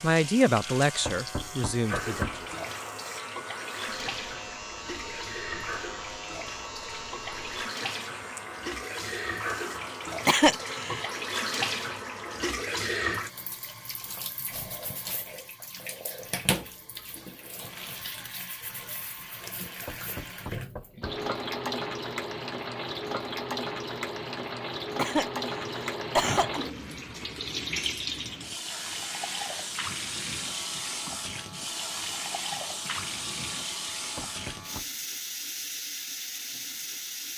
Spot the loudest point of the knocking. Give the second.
2 s.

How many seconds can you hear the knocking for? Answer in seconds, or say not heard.
4 s.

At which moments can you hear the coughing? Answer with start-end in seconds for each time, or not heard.
10.2-11.1, 24.9-26.6.